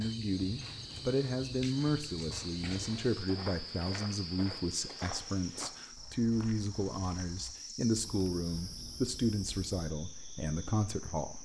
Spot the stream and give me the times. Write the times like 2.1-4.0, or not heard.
not heard.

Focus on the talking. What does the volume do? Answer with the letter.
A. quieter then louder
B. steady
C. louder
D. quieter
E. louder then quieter
B.